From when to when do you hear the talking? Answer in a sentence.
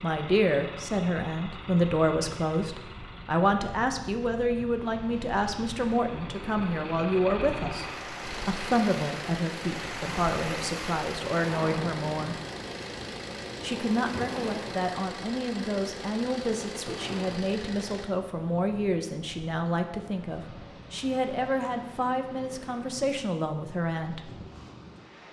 The talking can be heard from 0.0 to 12.4 s and from 13.6 to 24.4 s.